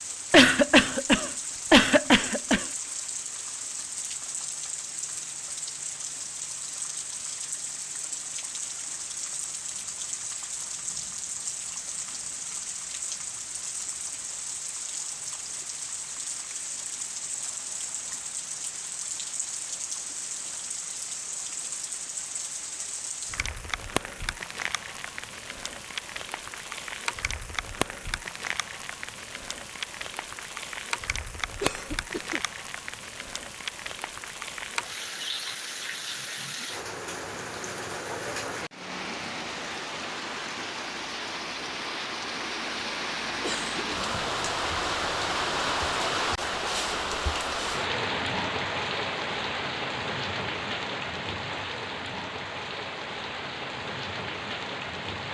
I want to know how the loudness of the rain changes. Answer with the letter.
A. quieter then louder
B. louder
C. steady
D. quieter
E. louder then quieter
B.